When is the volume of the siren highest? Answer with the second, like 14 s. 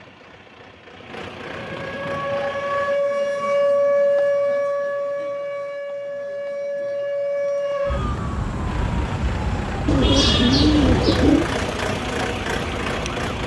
4 s.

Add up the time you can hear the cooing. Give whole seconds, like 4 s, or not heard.
2 s.